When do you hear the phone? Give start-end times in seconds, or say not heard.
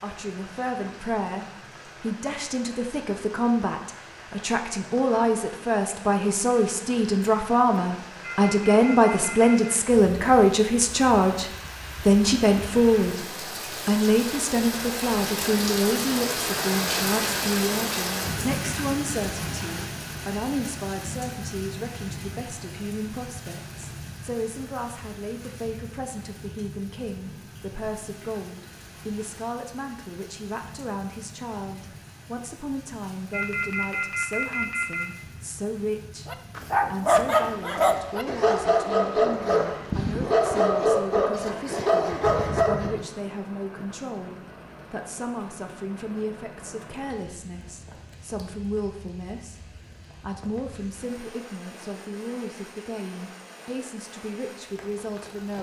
8.2-9.8, 33.3-35.2.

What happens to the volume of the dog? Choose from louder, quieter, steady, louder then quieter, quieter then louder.
steady.